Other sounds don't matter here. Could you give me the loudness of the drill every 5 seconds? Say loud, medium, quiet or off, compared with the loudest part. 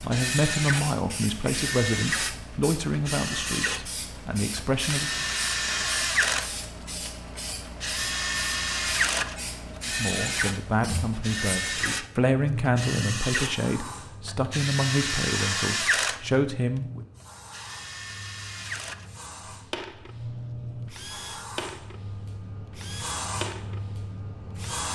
loud, loud, loud, loud, quiet.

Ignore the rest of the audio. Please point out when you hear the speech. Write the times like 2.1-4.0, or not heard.
0.0-5.2, 9.8-17.1.